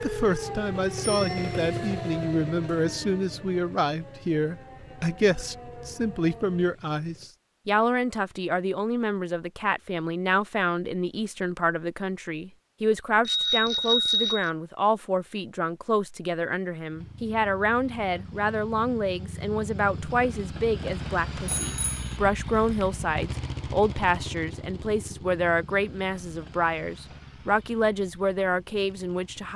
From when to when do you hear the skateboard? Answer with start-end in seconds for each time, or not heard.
not heard.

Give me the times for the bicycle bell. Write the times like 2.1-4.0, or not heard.
1.0-1.6, 13.2-14.5, 21.4-22.1.